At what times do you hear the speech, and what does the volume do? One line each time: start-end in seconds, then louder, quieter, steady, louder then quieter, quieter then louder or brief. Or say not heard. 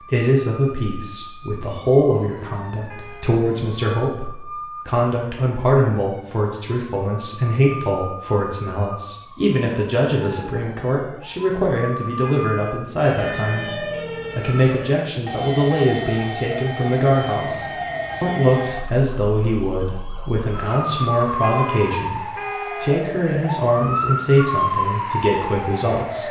0.0-26.2 steady.